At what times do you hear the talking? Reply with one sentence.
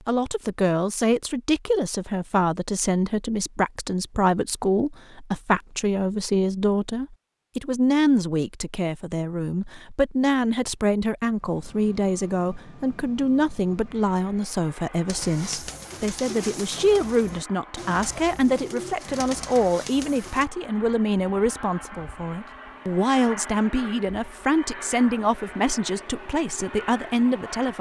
You can hear the talking from 0.1 to 27.7 s.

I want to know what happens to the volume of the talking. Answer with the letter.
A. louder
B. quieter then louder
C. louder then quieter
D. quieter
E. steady
E.